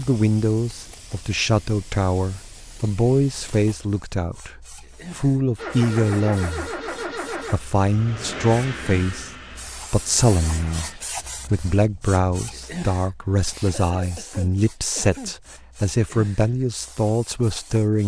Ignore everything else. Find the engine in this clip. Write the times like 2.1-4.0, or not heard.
5.5-11.0.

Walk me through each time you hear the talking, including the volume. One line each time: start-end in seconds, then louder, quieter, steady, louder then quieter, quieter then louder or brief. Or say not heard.
0.0-18.0 steady.